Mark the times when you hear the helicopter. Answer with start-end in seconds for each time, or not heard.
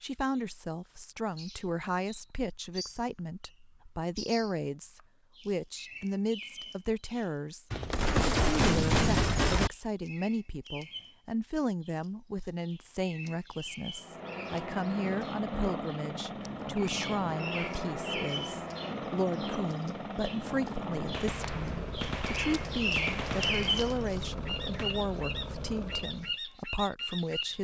13.9-26.4.